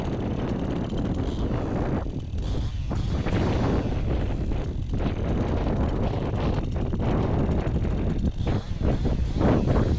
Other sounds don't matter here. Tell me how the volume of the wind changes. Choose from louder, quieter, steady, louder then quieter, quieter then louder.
steady.